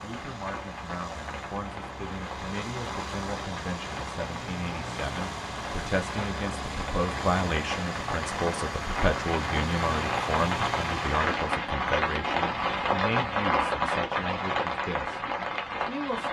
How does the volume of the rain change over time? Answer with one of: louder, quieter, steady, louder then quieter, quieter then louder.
louder.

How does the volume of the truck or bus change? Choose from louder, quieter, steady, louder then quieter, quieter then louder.
louder.